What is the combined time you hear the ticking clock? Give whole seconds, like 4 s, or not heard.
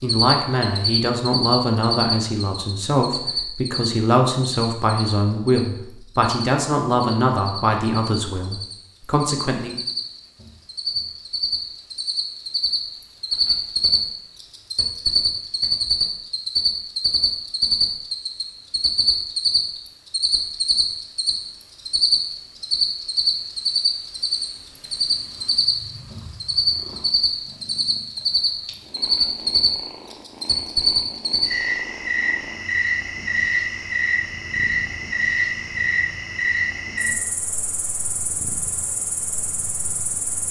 not heard.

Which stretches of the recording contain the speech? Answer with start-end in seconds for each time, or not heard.
0.0-9.7.